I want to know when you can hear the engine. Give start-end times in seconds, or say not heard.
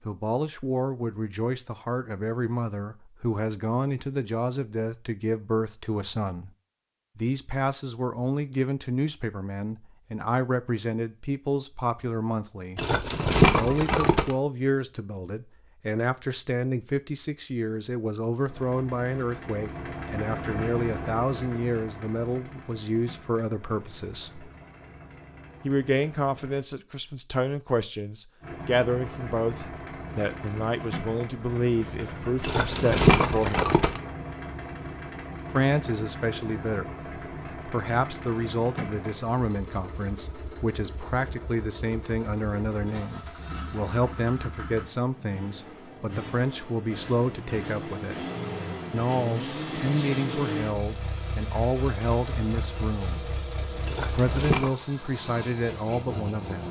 18.4-26.6, 28.4-56.6.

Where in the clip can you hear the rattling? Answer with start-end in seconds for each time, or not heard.
12.8-14.3, 32.4-34.0, 53.9-54.8.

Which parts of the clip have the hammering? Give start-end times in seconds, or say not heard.
not heard.